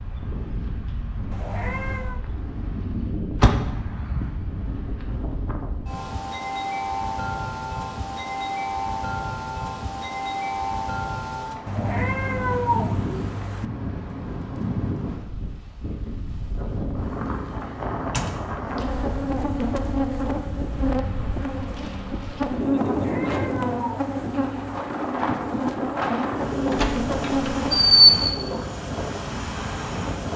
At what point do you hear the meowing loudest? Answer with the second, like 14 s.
13 s.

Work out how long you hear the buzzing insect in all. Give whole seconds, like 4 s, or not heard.
9 s.